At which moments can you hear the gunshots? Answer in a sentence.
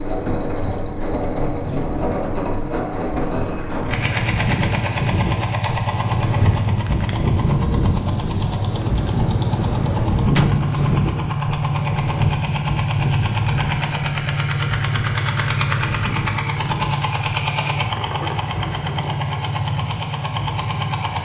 The gunshots can be heard from 10.3 to 11.2 s.